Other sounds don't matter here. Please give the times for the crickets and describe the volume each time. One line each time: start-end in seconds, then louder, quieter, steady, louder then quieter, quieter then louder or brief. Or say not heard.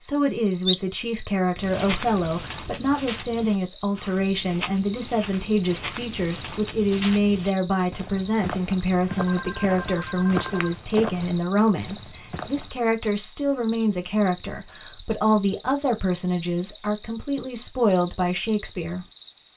0.0-19.5 steady.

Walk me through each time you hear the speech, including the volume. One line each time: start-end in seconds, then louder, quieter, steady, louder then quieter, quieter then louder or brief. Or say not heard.
0.0-19.1 steady.